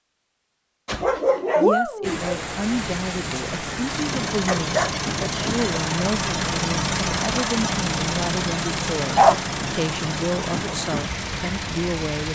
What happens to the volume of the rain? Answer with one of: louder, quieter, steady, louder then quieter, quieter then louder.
steady.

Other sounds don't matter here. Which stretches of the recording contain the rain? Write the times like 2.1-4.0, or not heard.
2.0-12.3.